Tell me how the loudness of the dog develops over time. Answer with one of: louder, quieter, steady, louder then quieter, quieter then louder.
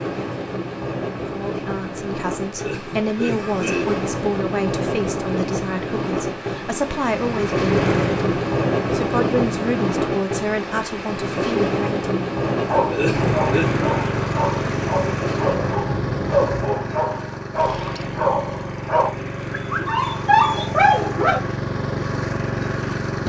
louder.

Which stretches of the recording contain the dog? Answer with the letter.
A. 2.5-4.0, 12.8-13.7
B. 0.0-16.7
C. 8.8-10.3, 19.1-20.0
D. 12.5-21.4
D.